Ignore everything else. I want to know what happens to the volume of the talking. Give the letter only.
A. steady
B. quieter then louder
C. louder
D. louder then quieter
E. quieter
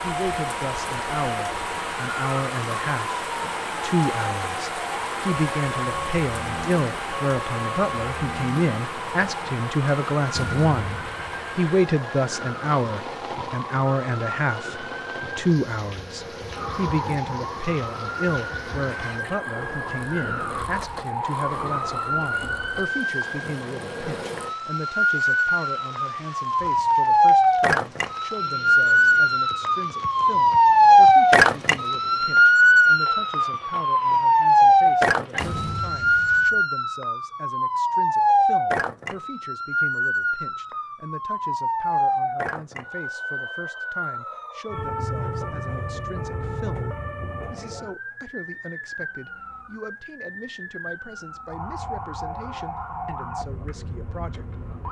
E.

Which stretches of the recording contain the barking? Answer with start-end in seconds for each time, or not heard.
not heard.